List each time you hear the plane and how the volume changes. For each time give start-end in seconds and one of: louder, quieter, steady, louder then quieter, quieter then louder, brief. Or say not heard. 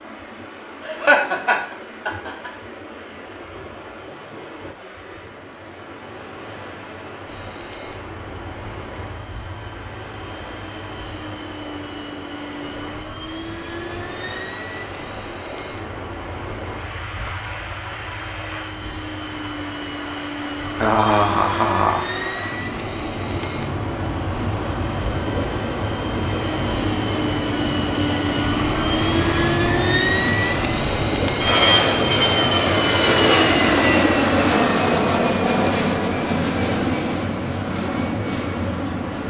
7.2-39.2 louder.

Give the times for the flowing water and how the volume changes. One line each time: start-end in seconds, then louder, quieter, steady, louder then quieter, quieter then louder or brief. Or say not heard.
0.0-39.2 louder.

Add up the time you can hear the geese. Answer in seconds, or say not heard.
not heard.